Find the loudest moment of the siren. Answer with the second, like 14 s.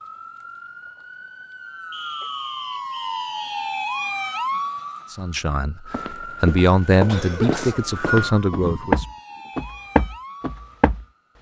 4 s.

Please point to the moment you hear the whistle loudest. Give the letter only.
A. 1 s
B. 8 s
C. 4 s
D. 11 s
B.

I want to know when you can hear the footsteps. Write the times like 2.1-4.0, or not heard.
5.9-11.3.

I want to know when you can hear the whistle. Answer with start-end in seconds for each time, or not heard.
1.9-3.8, 7.5-8.3.